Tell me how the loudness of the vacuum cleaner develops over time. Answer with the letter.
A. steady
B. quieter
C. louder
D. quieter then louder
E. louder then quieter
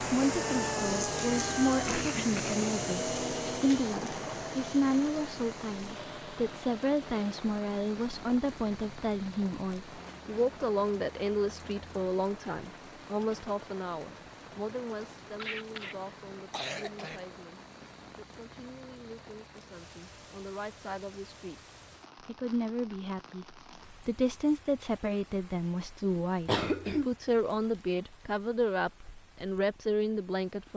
B.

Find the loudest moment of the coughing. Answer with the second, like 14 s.
27 s.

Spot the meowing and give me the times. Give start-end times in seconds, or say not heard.
0.2-1.9.